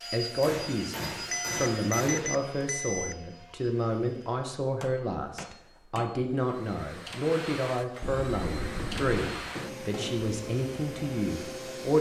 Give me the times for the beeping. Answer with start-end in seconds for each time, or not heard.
1.3-3.1, 8.0-9.2.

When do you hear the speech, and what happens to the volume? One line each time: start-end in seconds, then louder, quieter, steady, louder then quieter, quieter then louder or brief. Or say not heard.
0.1-11.9 steady.